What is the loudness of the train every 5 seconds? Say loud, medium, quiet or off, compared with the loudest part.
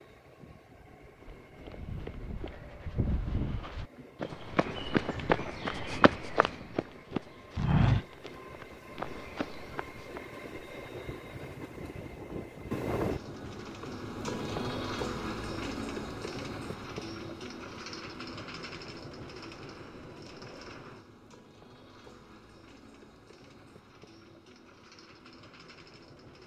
quiet, medium, loud, loud, quiet, quiet.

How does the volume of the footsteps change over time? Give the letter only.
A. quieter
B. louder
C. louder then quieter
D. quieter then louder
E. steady
C.